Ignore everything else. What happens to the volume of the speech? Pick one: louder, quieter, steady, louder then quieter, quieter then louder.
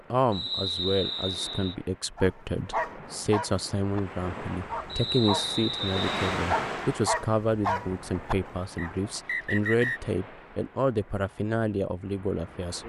steady.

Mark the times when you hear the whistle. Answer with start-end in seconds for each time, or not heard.
0.3-1.8, 4.8-6.3, 8.8-10.0.